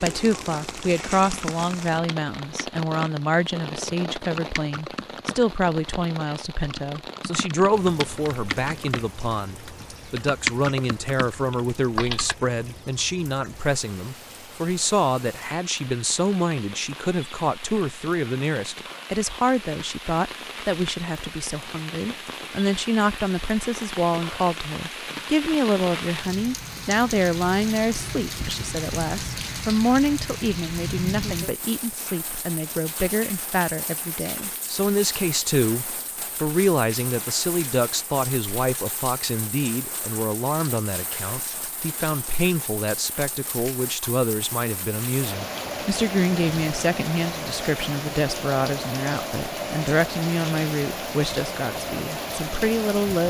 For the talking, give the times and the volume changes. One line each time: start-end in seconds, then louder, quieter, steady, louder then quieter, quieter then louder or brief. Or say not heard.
0.0-53.2 steady.